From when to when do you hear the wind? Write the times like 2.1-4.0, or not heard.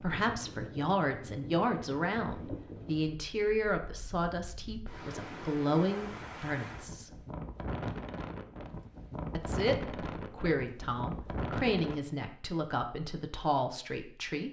0.0-12.0.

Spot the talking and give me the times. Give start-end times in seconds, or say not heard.
0.0-7.1, 9.3-14.4.